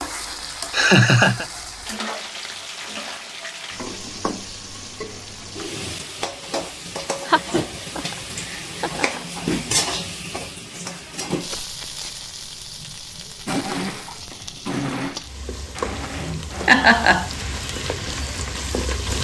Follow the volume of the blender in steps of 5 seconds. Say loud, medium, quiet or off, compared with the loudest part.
off, off, loud, medium.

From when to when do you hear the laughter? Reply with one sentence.
You can hear the laughter from 0.7 to 1.4 s, from 7.2 to 9.2 s and from 15.8 to 17.3 s.